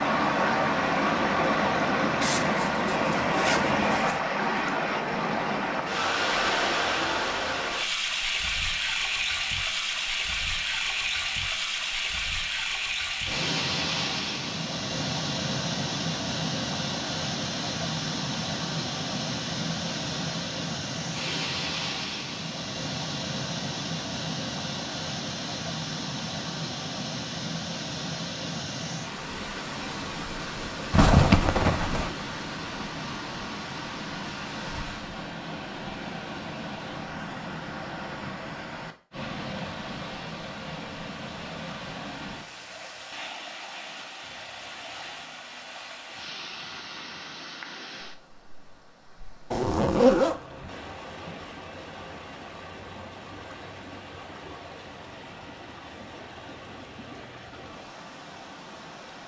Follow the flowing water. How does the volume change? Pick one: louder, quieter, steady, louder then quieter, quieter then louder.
quieter.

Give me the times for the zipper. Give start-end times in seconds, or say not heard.
2.2-4.2, 30.9-32.1, 49.5-50.4.